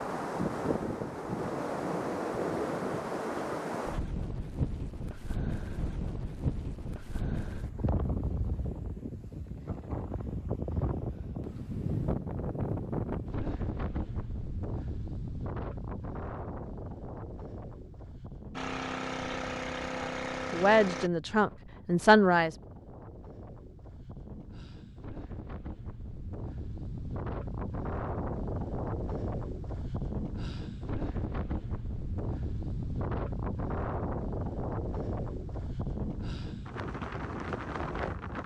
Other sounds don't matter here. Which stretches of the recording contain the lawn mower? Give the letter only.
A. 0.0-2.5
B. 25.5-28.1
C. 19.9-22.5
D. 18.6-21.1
D.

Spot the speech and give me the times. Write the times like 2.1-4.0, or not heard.
19.9-22.5.